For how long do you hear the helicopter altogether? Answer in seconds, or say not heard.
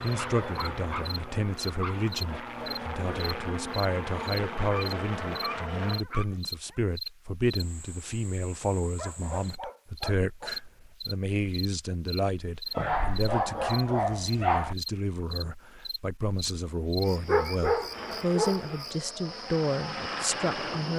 9 s.